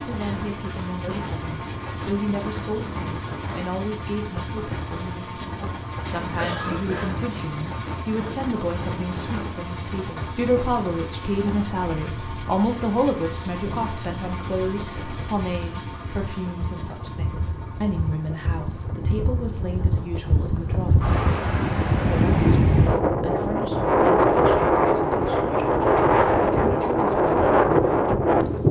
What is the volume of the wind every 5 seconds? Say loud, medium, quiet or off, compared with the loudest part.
quiet, quiet, quiet, quiet, loud, loud.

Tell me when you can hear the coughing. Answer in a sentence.
The coughing can be heard from 6.3 to 7.2 s and from 25.3 to 27.1 s.